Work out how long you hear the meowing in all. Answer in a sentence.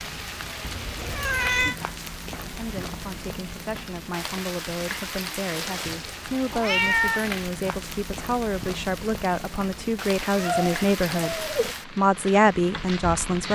You can hear the meowing for 4 seconds altogether.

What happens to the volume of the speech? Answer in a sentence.
The loudness of the speech goes up.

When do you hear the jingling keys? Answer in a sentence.
You can't hear the jingling keys here.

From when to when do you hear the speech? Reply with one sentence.
You can hear the speech from 2.4 to 13.5 s.